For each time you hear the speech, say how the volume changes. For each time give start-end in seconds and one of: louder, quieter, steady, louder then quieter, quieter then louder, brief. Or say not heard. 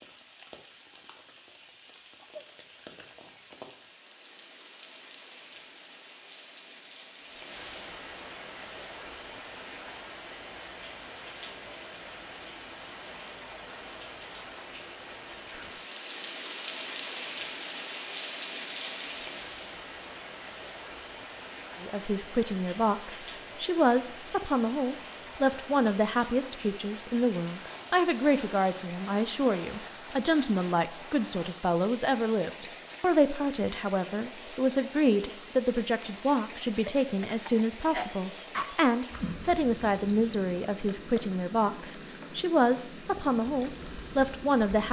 21.8-44.8 steady.